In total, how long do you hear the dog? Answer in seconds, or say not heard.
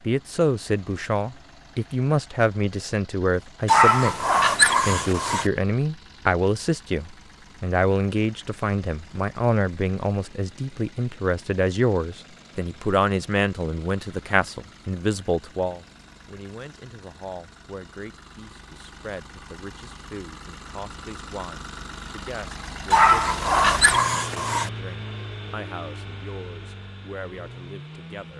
4 s.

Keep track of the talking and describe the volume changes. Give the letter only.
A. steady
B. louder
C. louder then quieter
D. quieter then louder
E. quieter
E.